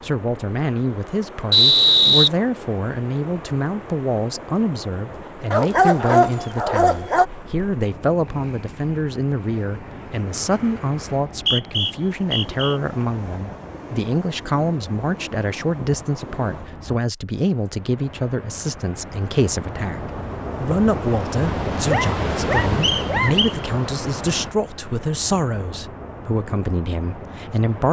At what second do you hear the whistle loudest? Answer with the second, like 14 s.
2 s.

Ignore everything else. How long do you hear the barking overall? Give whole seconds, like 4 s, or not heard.
3 s.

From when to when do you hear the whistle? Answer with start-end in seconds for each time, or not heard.
1.5-2.3, 11.3-12.8, 22.8-23.6.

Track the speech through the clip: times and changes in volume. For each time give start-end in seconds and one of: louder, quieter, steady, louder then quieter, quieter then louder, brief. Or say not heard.
0.0-27.8 steady.